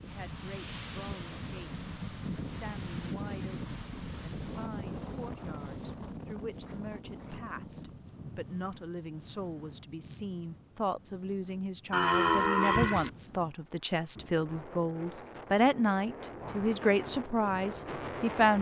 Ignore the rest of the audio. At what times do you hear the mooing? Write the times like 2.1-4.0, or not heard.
11.9-13.1.